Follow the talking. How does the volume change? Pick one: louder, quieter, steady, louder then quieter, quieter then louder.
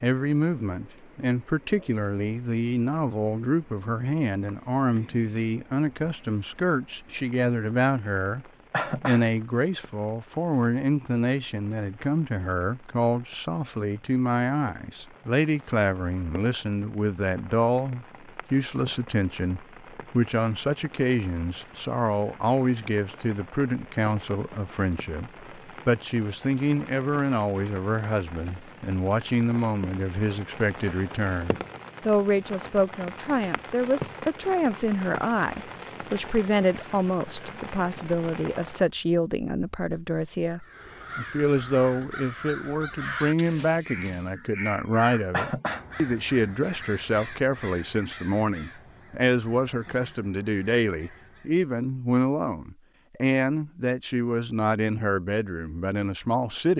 steady.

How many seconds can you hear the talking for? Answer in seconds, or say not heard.
57 s.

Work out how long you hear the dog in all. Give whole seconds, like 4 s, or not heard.
not heard.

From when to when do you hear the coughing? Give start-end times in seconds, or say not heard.
8.7-9.2, 45.3-45.9.